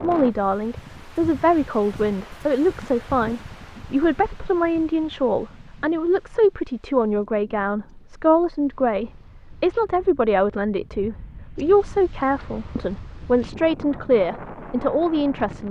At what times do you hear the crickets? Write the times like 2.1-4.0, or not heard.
not heard.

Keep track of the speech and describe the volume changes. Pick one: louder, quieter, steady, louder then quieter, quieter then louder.
steady.